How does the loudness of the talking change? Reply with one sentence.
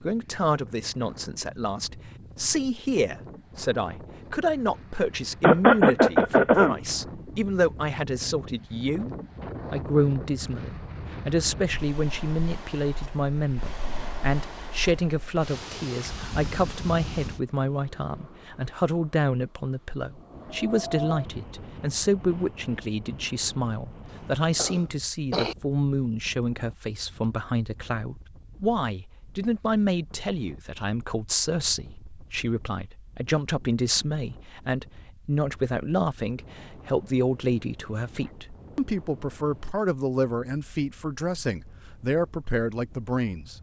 The volume of the talking stays about the same.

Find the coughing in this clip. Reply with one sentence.
The coughing can be heard from 5.4 to 6.8 s and from 24.6 to 25.6 s.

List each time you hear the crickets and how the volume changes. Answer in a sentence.
The crickets can't be heard in this clip.